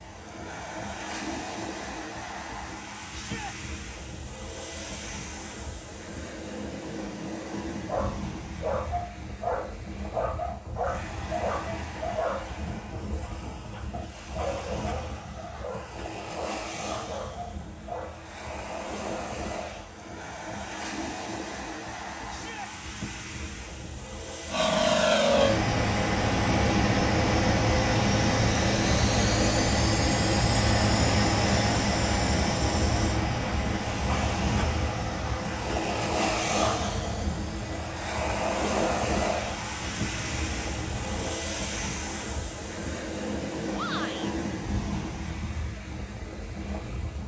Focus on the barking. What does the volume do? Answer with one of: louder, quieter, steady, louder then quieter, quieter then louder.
quieter.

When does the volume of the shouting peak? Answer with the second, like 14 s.
44 s.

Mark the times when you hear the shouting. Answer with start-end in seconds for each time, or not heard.
3.1-3.5, 22.2-22.7, 43.7-44.3.